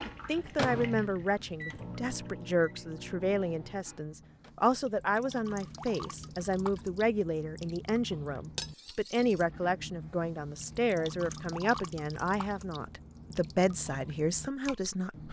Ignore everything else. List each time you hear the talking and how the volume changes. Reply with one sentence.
You can hear the talking from 0.1 to 15.2 s, at a steady volume.